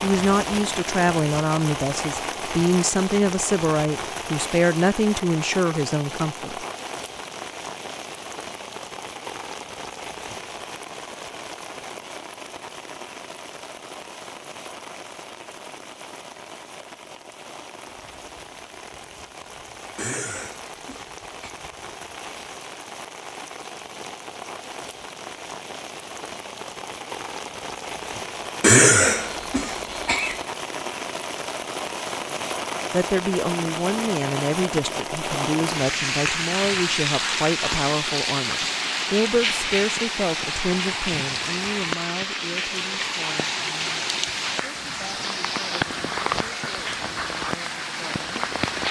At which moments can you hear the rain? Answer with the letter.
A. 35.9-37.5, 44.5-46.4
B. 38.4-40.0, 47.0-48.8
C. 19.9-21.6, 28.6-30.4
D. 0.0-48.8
D.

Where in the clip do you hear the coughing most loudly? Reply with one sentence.
The volume of the coughing peaks at 29 seconds.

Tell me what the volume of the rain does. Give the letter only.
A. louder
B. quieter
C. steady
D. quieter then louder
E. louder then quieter
D.